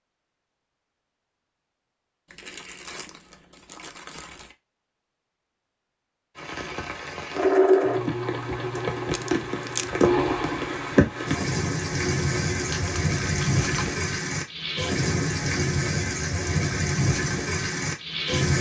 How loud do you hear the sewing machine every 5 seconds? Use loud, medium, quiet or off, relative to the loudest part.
off, loud, medium, off.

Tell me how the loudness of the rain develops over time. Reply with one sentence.
The volume of the rain goes up.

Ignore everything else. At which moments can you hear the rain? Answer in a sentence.
The rain can be heard from 6.3 to 18.5 s.